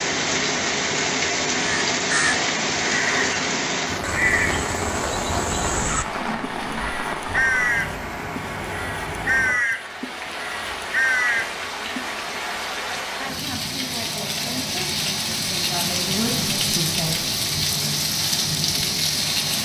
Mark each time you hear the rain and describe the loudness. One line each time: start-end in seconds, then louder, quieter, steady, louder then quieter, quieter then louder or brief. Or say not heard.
0.0-19.5 quieter then louder.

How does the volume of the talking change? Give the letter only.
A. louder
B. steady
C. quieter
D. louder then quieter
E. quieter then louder
A.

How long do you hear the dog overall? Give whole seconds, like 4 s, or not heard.
not heard.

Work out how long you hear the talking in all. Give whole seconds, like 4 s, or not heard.
5 s.